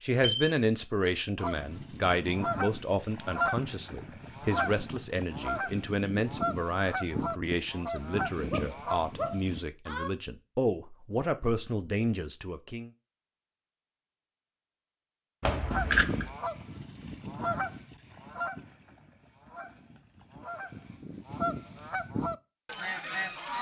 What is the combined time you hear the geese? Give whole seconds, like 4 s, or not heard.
16 s.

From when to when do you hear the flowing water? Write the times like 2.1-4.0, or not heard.
not heard.